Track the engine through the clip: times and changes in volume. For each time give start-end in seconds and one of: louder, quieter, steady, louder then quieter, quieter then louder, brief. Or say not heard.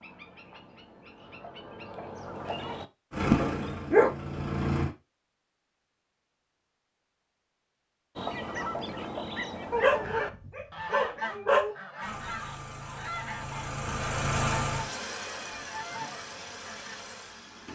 3.1-4.9 brief
12.0-17.7 louder then quieter.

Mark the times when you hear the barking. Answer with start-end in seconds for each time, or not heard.
3.3-4.1, 9.7-11.8.